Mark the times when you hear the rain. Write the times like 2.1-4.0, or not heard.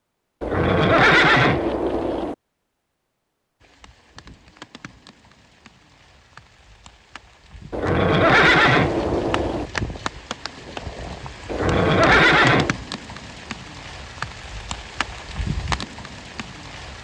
3.6-17.0.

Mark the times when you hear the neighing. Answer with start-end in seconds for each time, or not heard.
0.4-2.4, 7.7-9.7, 11.5-12.8.